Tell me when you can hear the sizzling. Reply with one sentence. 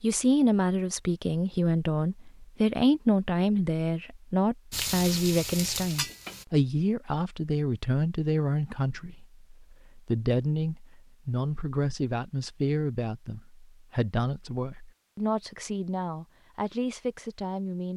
You can hear the sizzling from 4.7 to 6.5 s.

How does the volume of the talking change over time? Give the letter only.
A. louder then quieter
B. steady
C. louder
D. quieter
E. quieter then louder
D.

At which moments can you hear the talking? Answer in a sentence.
The talking can be heard from 0.0 to 17.9 s.